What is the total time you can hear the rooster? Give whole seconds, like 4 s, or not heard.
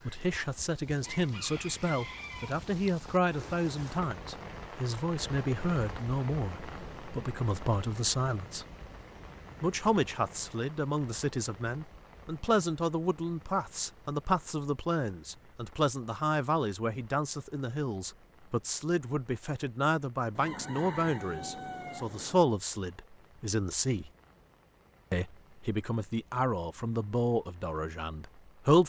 4 s.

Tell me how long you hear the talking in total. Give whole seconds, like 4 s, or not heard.
27 s.